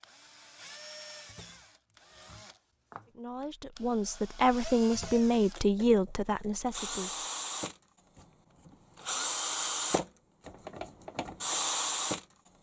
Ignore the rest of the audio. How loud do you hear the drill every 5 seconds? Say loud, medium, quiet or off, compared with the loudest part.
quiet, loud, loud.